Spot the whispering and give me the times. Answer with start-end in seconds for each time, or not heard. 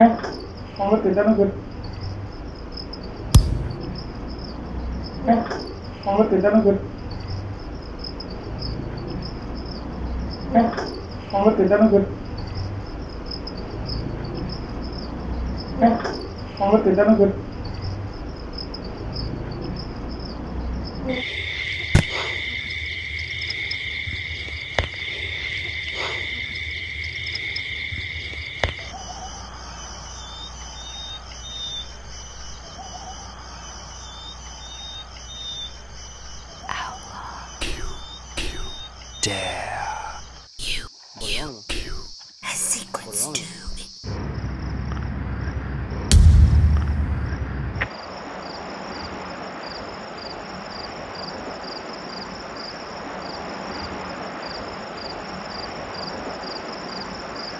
36.6-43.9.